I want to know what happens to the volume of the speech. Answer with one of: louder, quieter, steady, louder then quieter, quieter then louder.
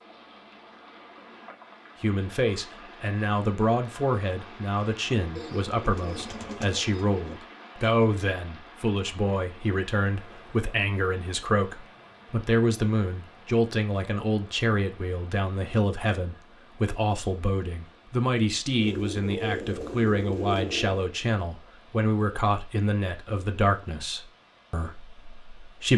steady.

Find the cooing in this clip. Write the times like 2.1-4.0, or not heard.
5.3-7.3, 18.8-21.1.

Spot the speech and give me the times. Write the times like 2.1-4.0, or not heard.
2.0-25.9.